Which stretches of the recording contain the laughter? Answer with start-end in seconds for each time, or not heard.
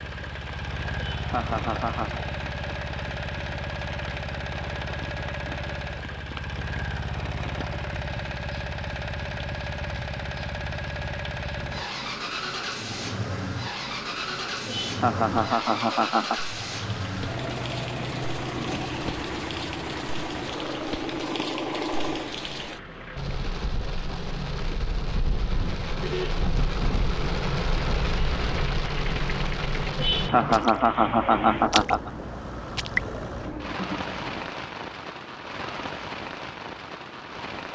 0.9-2.2, 14.7-16.4, 29.9-32.1.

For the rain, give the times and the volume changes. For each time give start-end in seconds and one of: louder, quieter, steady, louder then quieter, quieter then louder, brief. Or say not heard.
0.0-37.7 louder.